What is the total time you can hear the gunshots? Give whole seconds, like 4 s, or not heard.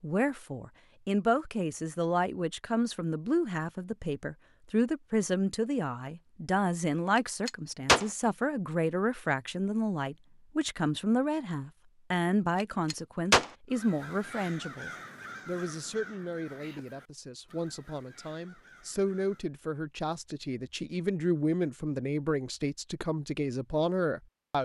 2 s.